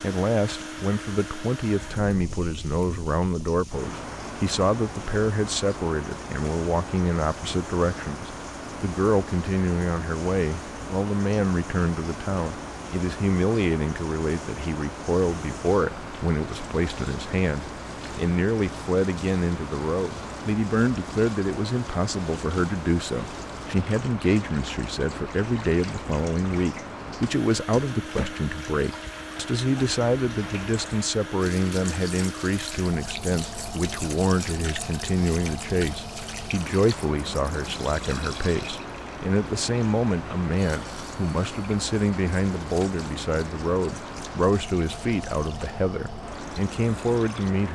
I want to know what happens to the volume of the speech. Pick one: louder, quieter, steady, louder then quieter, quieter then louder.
steady.